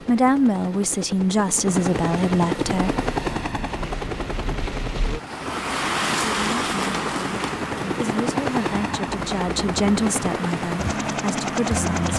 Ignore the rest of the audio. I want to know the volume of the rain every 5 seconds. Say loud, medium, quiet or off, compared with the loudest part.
medium, loud, medium.